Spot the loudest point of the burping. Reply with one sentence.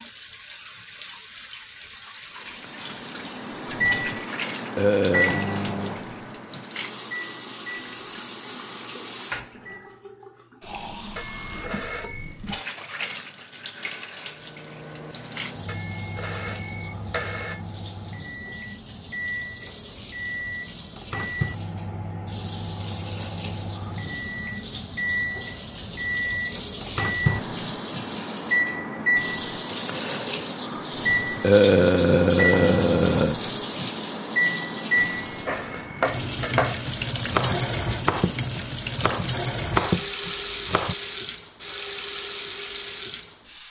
The loudest moment of the burping is at 32 seconds.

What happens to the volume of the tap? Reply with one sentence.
The loudness of the tap goes up.